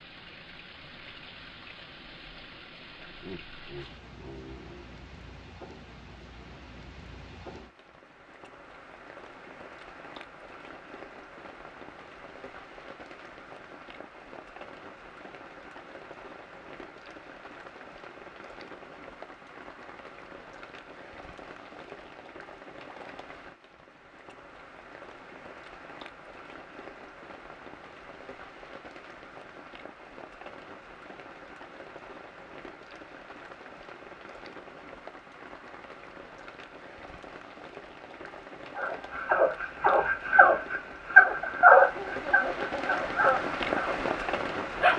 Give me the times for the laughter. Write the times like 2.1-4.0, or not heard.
3.2-4.9, 42.0-43.0.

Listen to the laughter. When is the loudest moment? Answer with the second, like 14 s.
43 s.